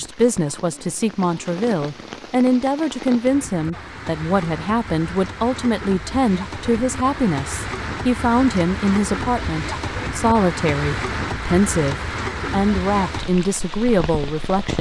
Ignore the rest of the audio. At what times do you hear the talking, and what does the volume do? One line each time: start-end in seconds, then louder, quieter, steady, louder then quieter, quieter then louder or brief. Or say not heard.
0.0-14.7 steady.